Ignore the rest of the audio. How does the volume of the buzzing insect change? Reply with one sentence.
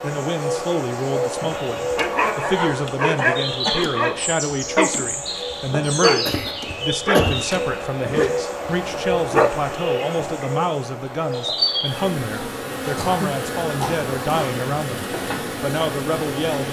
The volume of the buzzing insect stays about the same.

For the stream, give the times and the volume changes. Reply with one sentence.
You can't hear the stream here.